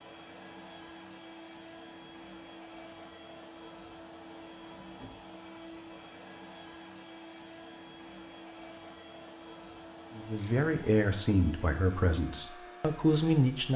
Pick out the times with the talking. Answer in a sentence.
The talking can be heard from 10.2 to 13.7 s.